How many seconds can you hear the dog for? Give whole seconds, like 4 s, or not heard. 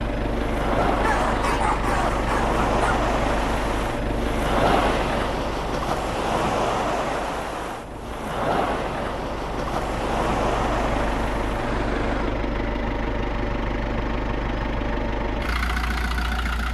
2 s.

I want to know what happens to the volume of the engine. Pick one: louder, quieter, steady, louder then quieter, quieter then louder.
quieter then louder.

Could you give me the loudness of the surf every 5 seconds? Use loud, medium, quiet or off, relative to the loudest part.
loud, loud, loud, off.